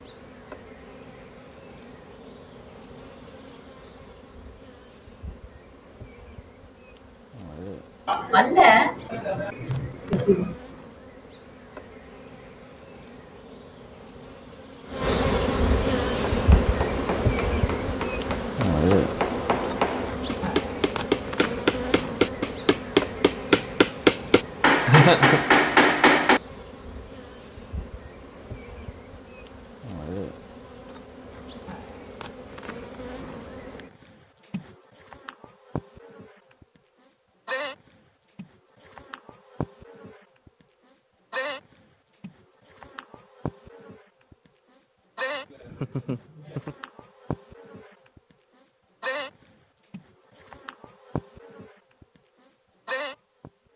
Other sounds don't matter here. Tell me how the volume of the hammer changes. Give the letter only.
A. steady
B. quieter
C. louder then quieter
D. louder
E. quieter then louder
D.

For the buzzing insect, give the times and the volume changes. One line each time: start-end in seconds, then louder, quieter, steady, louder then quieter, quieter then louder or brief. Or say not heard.
0.0-53.5 louder then quieter.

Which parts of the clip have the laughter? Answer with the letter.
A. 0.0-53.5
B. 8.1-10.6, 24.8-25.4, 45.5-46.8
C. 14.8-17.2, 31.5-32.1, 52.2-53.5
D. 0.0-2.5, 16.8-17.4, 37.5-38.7
B.